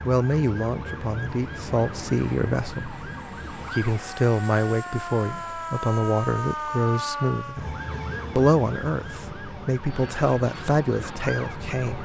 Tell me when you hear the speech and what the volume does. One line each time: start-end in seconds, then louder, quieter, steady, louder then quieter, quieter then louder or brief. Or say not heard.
0.0-12.0 steady.